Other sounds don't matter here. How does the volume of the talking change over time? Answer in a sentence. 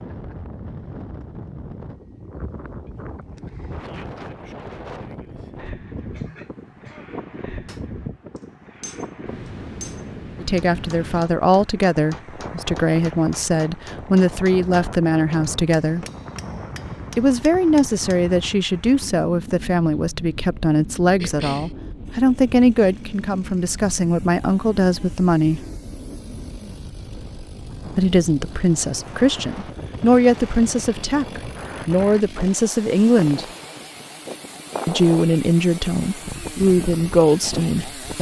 The loudness of the talking stays about the same.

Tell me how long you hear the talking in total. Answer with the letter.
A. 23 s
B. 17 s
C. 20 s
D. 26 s
A.